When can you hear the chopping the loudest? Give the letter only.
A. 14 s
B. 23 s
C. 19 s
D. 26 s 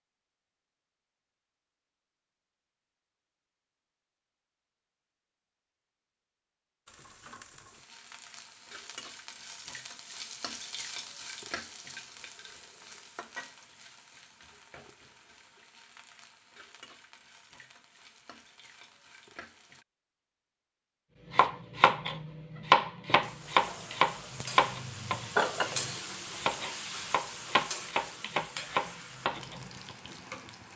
B.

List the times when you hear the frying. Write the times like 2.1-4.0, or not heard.
6.8-19.9, 23.2-30.7.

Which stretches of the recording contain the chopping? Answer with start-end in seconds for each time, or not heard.
21.3-29.9.